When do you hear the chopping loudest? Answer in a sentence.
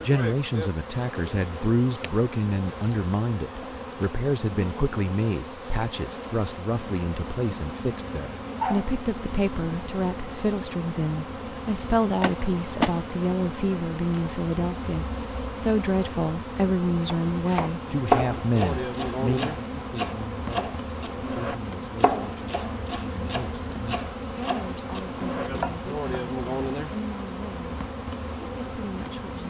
The volume of the chopping peaks at 18 seconds.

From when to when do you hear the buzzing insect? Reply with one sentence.
The buzzing insect can be heard from 0.0 to 29.4 s.